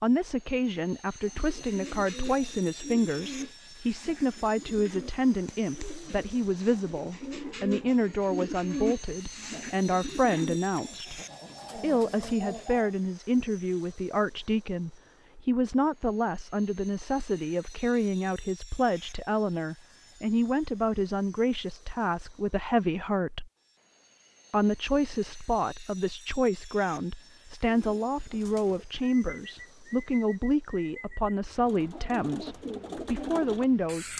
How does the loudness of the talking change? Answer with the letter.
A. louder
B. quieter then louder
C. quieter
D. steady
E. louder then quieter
D.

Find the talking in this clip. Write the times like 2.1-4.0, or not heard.
0.0-23.5, 24.5-34.1.